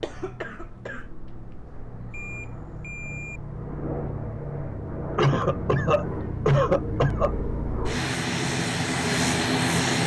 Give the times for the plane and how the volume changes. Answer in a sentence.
You can hear the plane from 0.0 to 10.0 s, getting louder.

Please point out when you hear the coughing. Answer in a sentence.
The coughing can be heard from 0.0 to 1.1 s and from 5.2 to 7.3 s.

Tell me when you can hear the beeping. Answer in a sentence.
The beeping can be heard from 2.1 to 3.4 s.